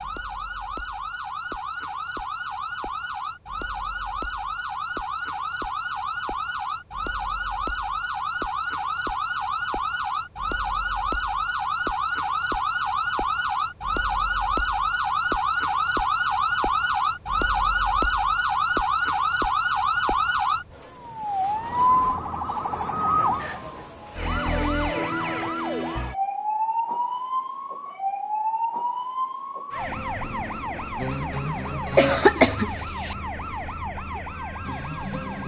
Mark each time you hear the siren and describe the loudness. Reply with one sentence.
You can hear the siren from 0.0 to 35.4 s, getting louder then quieter.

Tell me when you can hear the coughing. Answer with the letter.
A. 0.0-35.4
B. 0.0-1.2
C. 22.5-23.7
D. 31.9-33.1
D.